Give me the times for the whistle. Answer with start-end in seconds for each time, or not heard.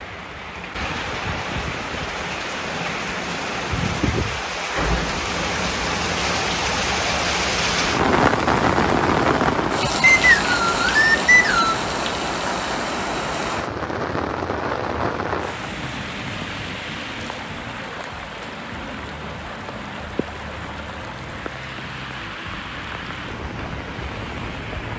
10.0-11.8.